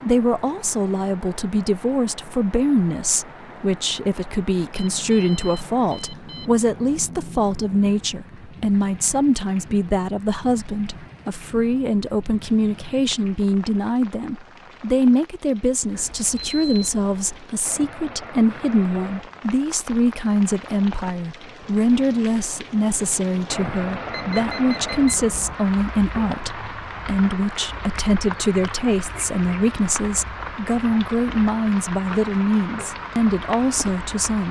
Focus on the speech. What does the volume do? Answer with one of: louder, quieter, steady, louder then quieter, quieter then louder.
steady.